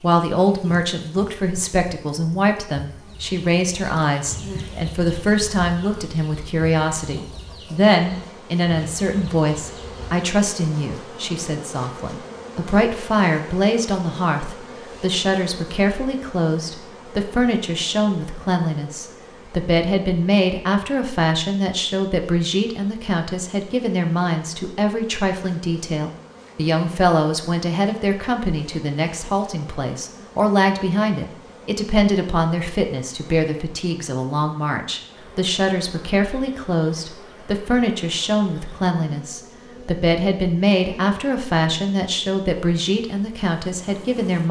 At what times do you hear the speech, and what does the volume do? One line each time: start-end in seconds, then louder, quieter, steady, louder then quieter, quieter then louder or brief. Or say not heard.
0.0-44.4 steady.